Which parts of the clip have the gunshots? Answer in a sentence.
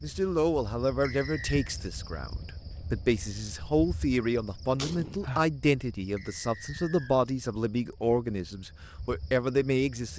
The gunshots can be heard from 4.2 to 5.2 s.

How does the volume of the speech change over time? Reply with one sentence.
The loudness of the speech stays about the same.